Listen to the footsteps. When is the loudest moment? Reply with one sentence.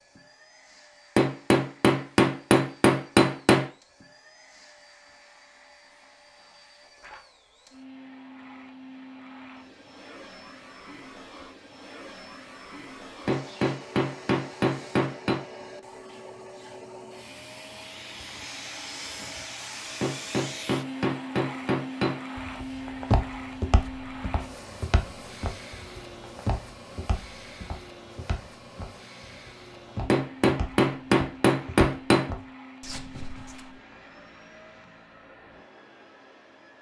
The volume of the footsteps peaks at 23 seconds.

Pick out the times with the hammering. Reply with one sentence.
The hammering can be heard from 1.1 to 3.6 s, from 13.2 to 15.4 s, from 20.0 to 22.2 s and from 30.1 to 32.3 s.